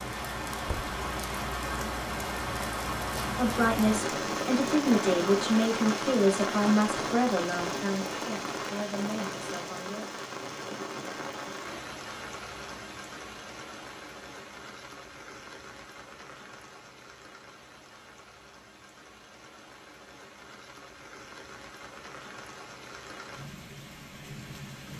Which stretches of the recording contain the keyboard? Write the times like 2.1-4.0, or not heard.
not heard.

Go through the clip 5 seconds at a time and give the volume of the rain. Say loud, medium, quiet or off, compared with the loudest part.
loud, loud, medium, quiet, quiet.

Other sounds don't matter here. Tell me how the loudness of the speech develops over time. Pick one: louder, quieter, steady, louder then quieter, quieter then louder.
quieter.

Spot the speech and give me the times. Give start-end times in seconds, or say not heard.
3.4-10.1.